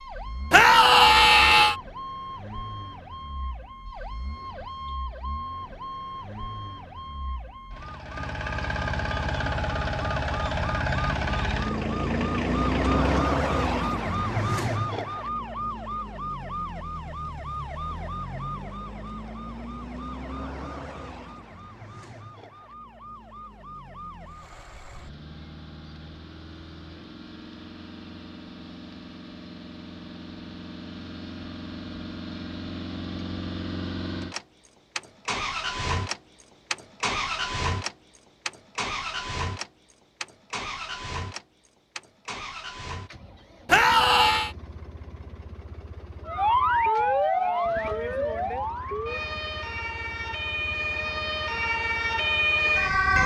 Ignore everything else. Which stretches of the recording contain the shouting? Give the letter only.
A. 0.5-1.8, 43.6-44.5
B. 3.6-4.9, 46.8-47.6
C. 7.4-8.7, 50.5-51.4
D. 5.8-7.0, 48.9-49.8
A.